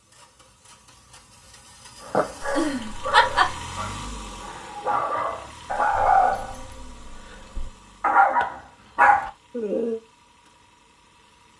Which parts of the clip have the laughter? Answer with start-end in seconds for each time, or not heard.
2.4-3.5.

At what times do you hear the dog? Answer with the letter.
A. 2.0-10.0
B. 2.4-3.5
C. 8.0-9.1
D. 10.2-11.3
A.